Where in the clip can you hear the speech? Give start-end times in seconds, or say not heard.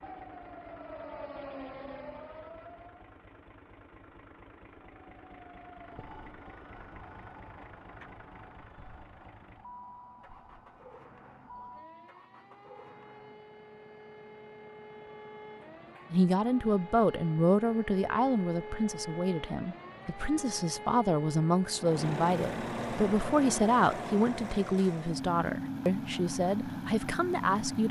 16.1-27.8.